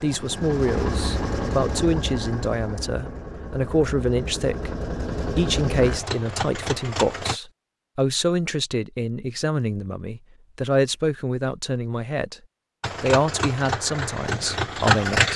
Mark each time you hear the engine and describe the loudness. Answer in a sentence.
You can hear the engine from 0.0 to 7.4 s, getting quieter then louder; and briefly from 12.8 to 15.3 s.